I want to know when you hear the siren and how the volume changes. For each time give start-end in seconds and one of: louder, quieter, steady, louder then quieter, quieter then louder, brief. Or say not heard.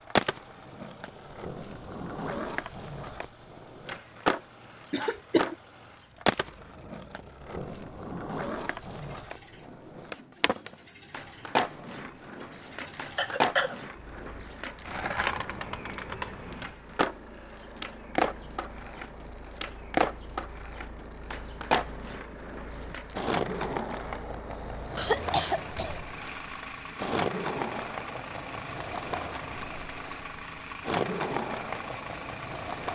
not heard.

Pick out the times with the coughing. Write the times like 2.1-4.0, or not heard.
4.9-5.5, 13.1-13.8, 24.9-26.0.